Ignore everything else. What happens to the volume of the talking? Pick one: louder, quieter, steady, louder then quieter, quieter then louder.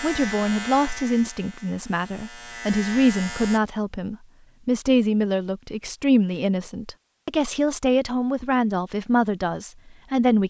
steady.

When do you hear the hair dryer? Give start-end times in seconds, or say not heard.
not heard.